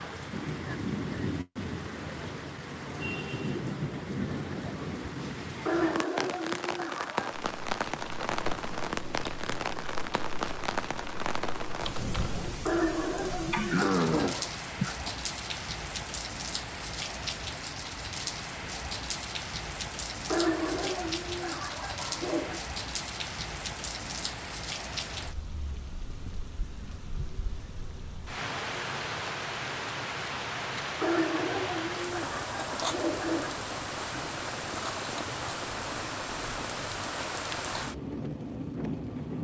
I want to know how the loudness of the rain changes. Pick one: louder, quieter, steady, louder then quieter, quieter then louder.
steady.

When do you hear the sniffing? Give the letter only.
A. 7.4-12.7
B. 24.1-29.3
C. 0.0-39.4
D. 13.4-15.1
D.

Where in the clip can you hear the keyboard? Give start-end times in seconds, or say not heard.
7.4-12.7.